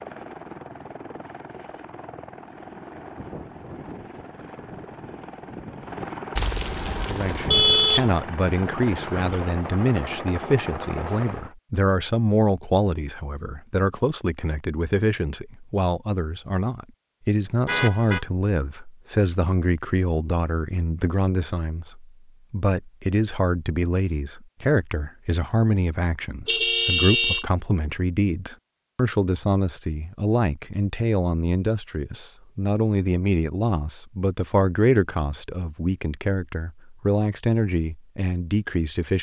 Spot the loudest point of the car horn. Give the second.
8 s.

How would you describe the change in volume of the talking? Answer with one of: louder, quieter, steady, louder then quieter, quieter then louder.
steady.